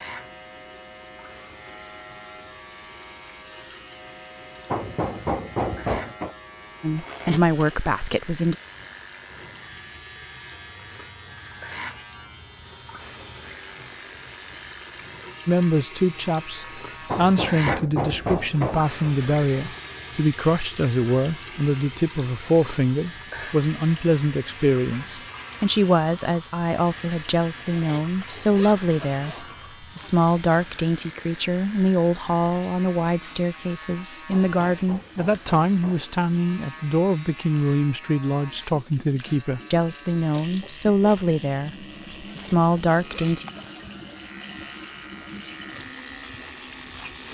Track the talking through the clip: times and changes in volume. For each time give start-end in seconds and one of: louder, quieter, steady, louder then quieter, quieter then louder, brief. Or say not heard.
6.8-8.6 brief
15.4-43.5 steady.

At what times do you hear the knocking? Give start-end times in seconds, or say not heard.
4.7-6.3, 17.1-18.9, 34.3-36.1.